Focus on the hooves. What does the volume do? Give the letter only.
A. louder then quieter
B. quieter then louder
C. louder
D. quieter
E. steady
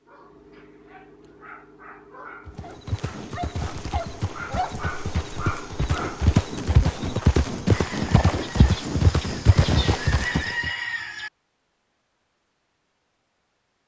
C.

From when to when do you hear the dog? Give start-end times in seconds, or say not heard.
0.0-6.8.